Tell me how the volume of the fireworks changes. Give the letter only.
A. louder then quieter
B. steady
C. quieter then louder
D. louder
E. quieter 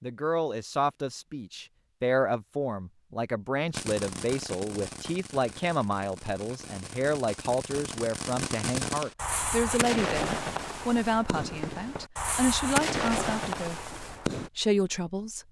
D.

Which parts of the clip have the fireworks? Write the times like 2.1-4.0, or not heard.
3.7-14.5.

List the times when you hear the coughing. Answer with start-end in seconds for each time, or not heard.
not heard.